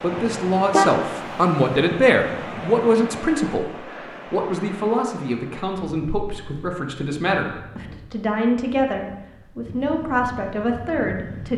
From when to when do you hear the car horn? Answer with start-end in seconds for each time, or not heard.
0.2-1.1.